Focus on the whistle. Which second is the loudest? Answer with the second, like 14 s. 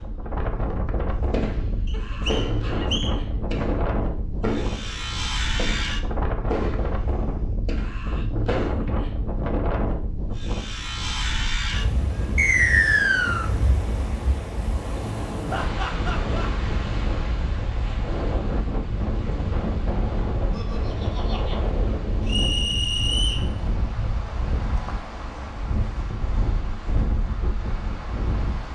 13 s.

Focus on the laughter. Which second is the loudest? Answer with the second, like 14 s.
16 s.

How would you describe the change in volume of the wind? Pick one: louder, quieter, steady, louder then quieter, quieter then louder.
steady.